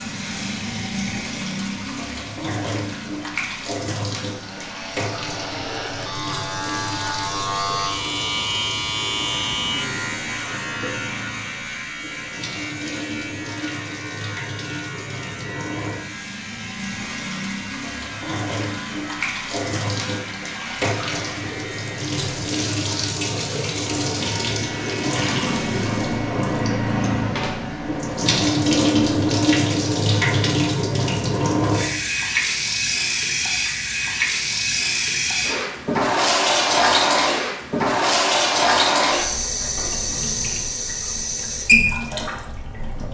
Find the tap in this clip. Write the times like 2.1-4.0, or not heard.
0.0-43.0.